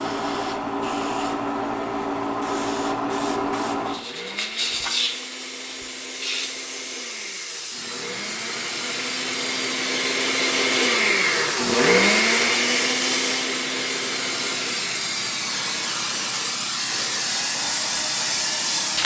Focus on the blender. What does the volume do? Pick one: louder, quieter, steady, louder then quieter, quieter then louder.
louder then quieter.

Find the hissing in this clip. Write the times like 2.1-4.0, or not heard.
0.0-19.0.